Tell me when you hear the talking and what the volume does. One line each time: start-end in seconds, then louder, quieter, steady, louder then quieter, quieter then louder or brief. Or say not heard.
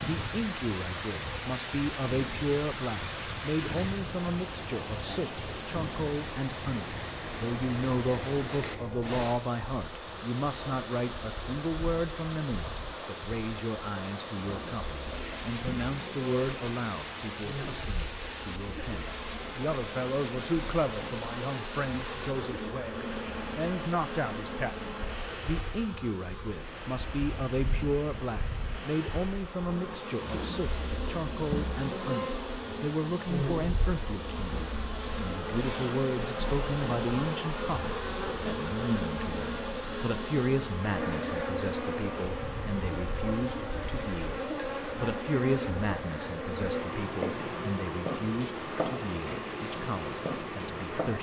0.0-51.1 steady.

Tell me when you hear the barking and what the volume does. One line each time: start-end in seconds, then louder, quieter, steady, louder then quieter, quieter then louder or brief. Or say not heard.
not heard.